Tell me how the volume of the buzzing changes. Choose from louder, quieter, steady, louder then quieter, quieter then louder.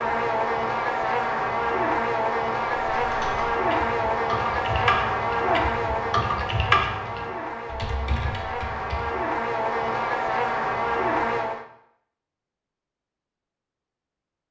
quieter then louder.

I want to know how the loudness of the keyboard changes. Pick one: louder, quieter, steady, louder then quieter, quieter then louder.
louder then quieter.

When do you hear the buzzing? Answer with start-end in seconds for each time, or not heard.
0.0-11.7.